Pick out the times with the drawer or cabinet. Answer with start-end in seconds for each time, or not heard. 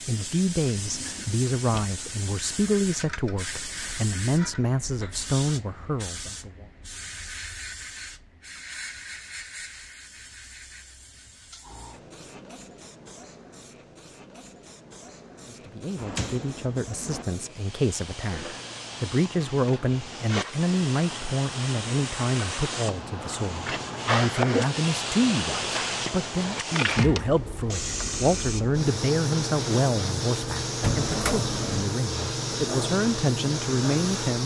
0.7-1.9, 15.9-17.2, 30.8-31.9.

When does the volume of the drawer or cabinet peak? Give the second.
31 s.